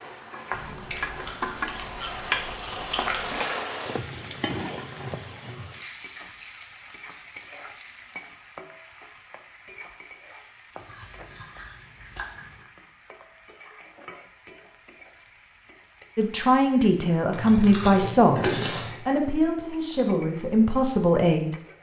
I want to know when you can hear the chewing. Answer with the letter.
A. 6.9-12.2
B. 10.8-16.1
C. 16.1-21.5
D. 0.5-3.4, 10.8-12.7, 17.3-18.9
D.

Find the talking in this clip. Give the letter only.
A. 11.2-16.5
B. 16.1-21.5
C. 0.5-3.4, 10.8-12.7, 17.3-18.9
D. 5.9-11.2
B.